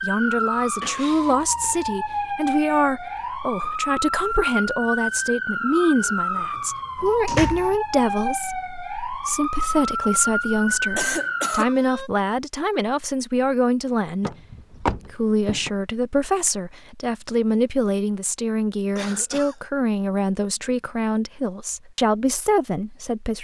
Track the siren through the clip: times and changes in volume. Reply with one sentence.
You can hear the siren from 0.0 to 12.1 s, at a steady volume.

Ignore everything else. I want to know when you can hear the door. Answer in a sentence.
You can hear the door from 6.0 to 7.8 s and from 14.2 to 15.7 s.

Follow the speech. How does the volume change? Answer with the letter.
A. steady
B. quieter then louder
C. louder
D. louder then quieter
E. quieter
A.